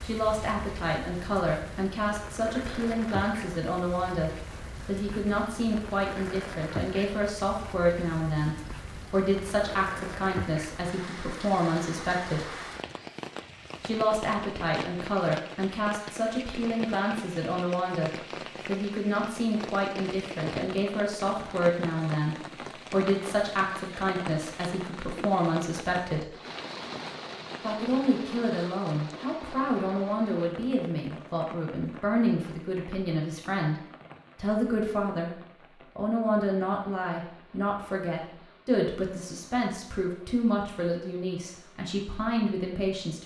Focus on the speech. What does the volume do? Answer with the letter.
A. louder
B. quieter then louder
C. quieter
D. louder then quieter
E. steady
E.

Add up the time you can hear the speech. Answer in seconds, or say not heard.
40 s.